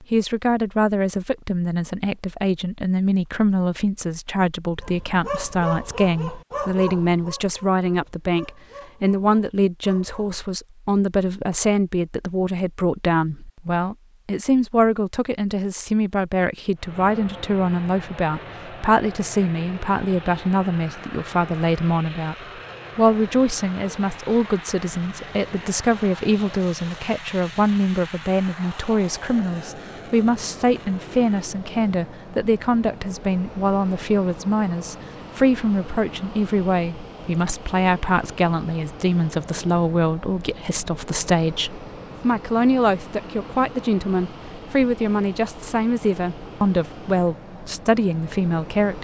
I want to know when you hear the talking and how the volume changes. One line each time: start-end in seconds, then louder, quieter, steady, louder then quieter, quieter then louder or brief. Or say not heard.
0.0-22.4 steady
22.9-48.9 steady.